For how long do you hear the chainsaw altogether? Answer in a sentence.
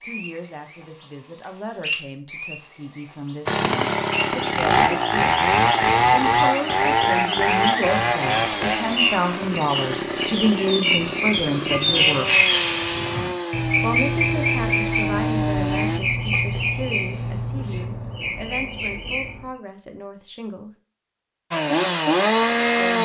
The chainsaw can be heard for 14 seconds in total.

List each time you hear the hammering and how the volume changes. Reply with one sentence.
You can't hear the hammering here.